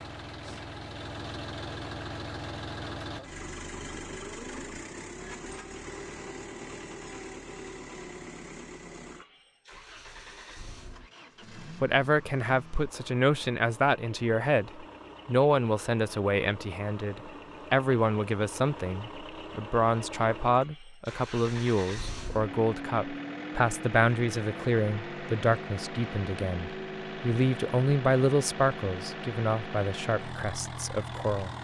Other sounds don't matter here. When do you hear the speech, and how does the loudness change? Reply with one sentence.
The speech can be heard from 11.6 to 31.5 s, at a steady volume.